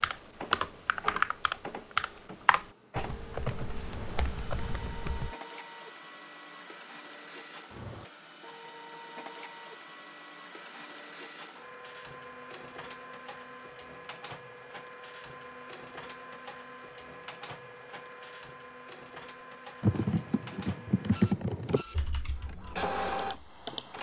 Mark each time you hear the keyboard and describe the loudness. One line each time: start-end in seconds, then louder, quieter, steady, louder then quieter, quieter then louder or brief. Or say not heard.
0.0-5.3 quieter
19.8-23.9 louder then quieter.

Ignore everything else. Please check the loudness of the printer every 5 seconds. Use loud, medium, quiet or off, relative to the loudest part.
medium, medium, medium, medium, loud.